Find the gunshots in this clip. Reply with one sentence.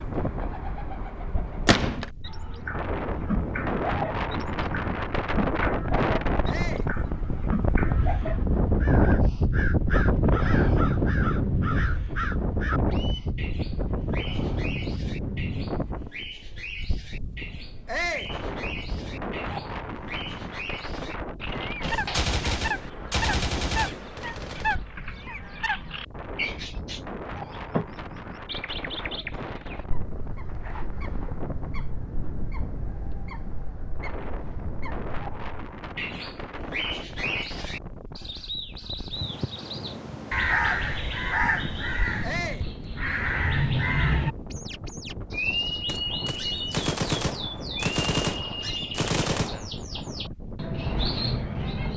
The gunshots can be heard from 1.6 to 2.1 s, from 21.8 to 24.8 s and from 45.9 to 49.7 s.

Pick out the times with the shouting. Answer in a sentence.
The shouting can be heard from 6.5 to 6.9 s, from 17.9 to 18.4 s and from 42.2 to 42.7 s.